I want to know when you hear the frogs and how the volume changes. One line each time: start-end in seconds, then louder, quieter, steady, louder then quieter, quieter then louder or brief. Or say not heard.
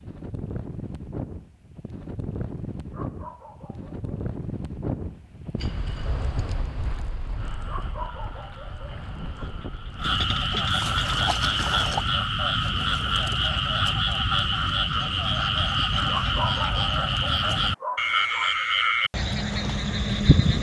7.3-20.5 louder.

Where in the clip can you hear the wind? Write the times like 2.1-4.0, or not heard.
0.0-10.3.